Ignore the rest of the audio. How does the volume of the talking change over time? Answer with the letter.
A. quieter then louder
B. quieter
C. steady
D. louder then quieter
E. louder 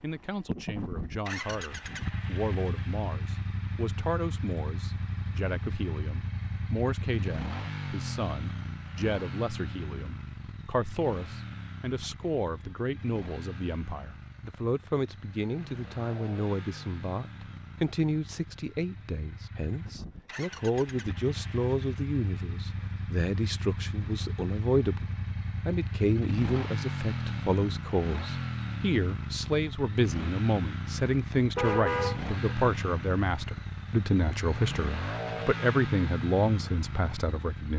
E.